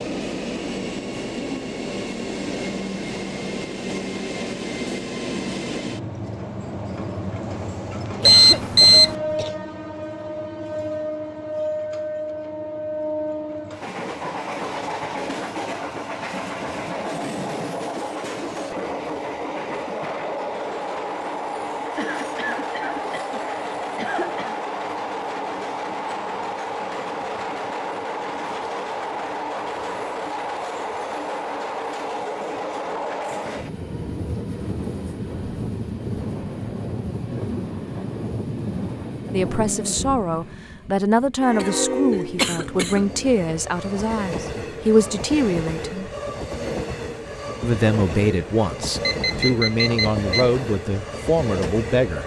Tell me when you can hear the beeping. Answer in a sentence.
The beeping can be heard from 8.2 to 9.2 s and from 49.0 to 50.5 s.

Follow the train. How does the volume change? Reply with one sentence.
The volume of the train stays about the same.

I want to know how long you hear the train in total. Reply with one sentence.
The train can be heard for 52 seconds in total.